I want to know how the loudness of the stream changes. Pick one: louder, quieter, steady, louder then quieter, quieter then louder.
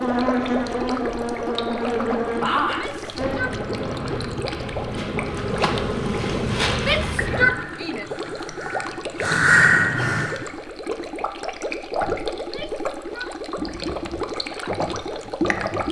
steady.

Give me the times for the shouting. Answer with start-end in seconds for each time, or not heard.
2.6-3.6, 6.8-8.1, 12.3-13.3.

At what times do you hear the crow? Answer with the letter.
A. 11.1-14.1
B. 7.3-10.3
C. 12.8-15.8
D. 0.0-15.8
B.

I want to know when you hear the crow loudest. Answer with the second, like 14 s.
10 s.